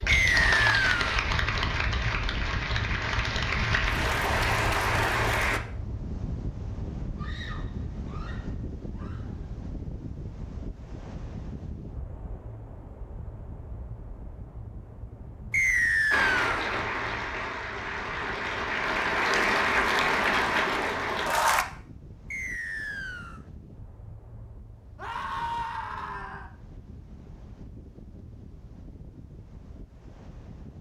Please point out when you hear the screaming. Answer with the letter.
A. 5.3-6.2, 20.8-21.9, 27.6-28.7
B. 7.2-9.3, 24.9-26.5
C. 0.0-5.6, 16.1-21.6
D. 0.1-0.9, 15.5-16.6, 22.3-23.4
B.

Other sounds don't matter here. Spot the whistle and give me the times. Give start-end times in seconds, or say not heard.
0.1-0.9, 15.5-16.6, 22.3-23.4.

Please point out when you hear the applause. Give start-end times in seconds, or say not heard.
0.0-5.6, 16.1-21.6.